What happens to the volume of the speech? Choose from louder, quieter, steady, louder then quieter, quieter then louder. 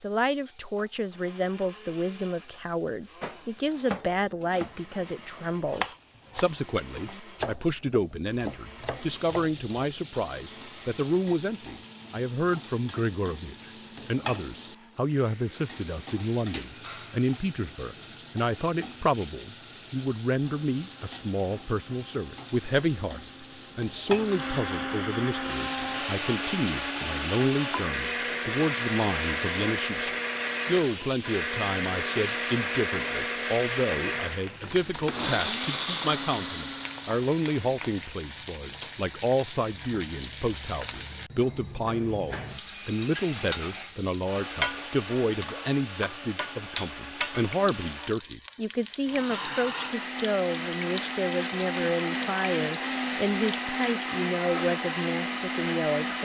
steady.